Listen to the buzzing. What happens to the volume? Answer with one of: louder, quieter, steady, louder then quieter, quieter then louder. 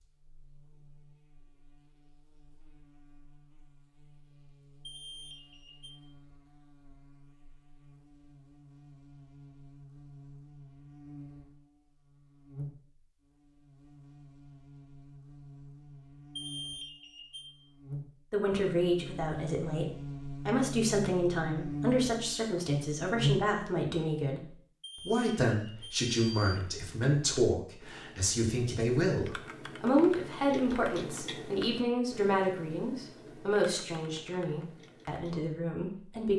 louder.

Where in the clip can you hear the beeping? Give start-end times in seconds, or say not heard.
4.8-6.0, 16.4-17.5, 24.8-26.6.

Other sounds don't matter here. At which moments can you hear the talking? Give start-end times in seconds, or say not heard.
18.3-36.3.